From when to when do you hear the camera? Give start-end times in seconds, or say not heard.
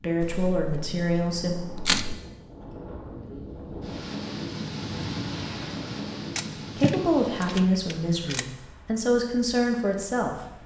0.2-2.1, 5.9-8.4.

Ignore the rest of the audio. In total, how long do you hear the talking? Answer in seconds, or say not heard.
5 s.